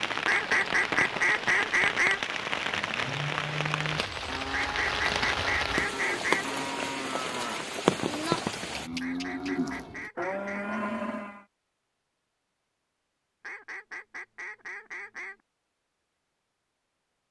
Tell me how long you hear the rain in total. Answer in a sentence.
The rain can be heard for 9 seconds in total.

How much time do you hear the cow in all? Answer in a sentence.
The cow can be heard for 9 seconds in total.